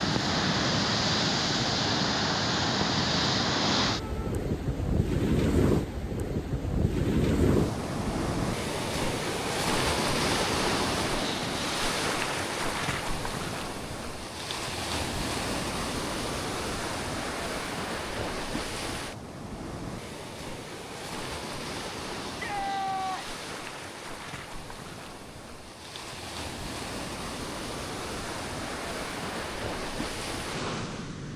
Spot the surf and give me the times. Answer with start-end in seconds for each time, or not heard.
0.0-31.3.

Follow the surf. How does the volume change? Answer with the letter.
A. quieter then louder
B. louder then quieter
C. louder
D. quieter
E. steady
D.